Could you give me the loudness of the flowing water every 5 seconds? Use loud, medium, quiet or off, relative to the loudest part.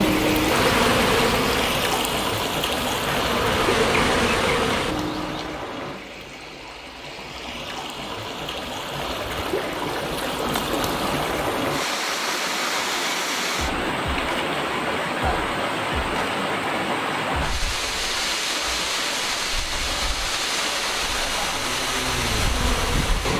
loud, medium, loud, loud, loud.